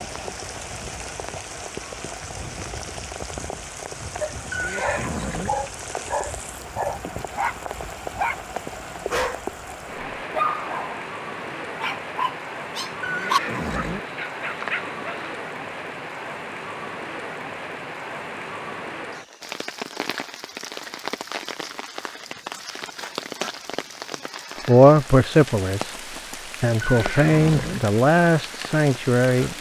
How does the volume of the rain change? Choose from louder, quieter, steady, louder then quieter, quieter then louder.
steady.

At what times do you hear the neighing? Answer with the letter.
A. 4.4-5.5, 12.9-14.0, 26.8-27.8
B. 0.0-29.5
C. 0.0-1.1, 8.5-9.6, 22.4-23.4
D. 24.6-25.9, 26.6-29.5
A.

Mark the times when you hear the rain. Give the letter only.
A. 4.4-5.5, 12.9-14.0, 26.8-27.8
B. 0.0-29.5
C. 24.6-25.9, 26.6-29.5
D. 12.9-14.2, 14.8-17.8
B.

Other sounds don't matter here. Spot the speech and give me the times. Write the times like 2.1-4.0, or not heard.
24.6-25.9, 26.6-29.5.